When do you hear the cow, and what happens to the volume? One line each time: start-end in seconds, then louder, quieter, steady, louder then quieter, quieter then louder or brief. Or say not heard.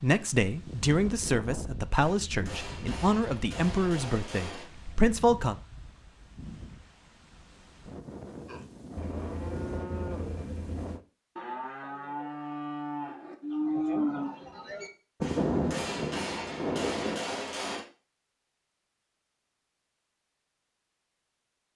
8.4-17.2 louder.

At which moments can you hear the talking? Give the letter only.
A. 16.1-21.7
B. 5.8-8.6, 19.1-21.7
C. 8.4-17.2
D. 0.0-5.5
D.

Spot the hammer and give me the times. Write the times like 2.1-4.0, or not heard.
1.9-4.7, 15.2-17.9.